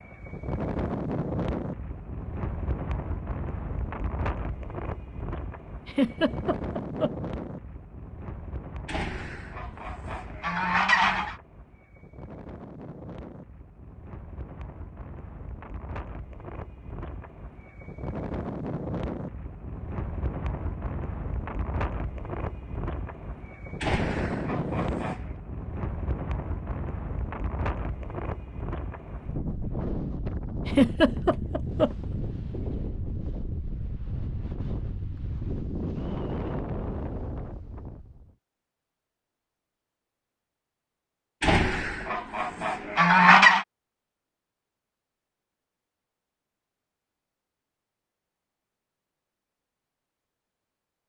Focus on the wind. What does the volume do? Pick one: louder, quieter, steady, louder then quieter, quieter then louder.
quieter then louder.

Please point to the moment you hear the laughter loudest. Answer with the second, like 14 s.
31 s.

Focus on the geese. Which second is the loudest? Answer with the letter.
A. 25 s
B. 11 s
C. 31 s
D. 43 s
D.